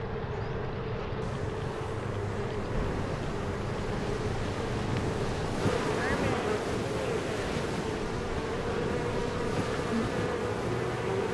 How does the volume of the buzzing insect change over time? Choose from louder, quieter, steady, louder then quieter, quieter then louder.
steady.